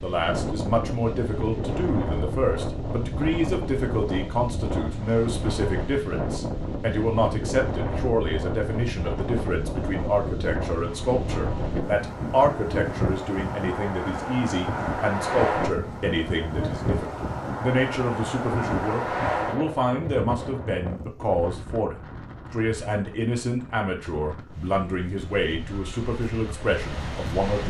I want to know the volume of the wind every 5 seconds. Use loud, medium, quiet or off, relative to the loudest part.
loud, loud, loud, loud, medium, medium.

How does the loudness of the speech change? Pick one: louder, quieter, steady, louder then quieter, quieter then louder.
steady.